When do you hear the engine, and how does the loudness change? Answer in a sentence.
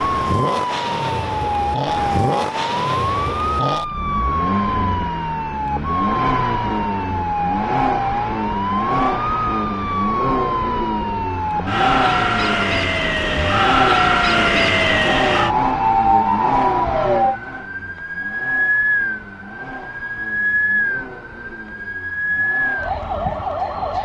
The engine can be heard from 0.0 to 24.0 s, getting quieter.